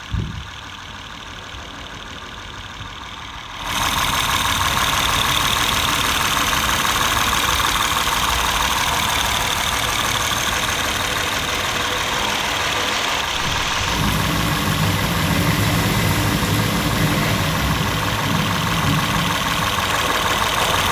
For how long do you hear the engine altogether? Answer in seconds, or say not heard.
21 s.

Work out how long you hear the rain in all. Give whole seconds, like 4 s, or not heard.
16 s.